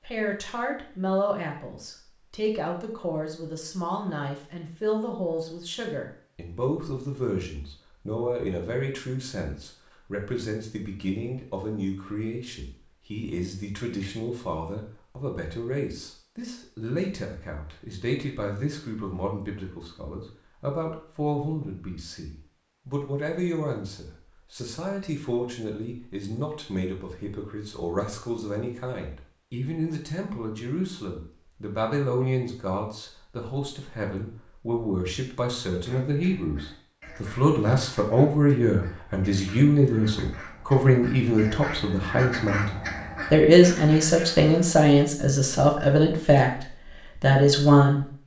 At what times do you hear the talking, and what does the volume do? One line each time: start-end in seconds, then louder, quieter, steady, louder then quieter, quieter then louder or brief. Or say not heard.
0.0-48.1 louder.